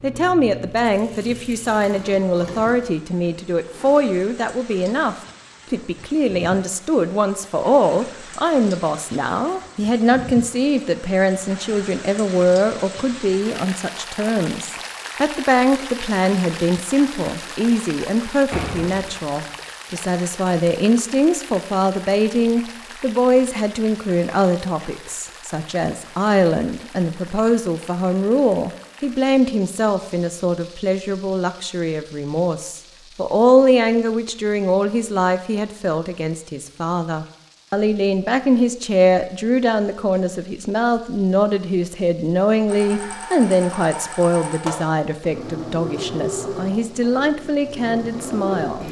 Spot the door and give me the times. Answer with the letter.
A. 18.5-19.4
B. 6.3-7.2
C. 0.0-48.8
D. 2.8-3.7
A.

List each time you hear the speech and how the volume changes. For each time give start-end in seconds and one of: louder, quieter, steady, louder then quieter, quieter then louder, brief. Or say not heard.
0.0-48.8 steady.